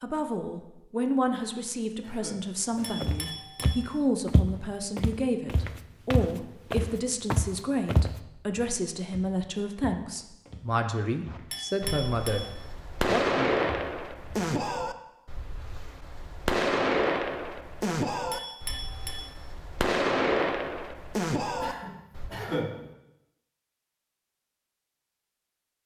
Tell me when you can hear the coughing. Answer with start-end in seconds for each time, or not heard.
1.3-3.0, 21.6-22.9.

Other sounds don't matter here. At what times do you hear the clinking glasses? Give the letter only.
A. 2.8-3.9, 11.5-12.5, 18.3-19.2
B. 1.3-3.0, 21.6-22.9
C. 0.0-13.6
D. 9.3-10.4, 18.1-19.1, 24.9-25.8
A.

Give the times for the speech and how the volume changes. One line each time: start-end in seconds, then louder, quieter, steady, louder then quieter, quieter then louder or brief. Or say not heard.
0.0-13.6 steady.